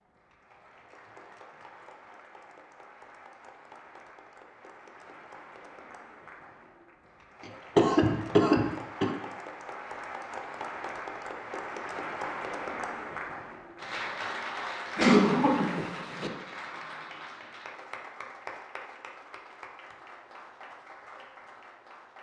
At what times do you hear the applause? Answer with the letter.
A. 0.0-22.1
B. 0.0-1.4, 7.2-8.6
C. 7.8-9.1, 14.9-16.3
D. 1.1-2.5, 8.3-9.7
A.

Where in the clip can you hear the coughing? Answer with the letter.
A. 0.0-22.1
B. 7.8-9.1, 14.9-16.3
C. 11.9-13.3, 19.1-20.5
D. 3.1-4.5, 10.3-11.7
B.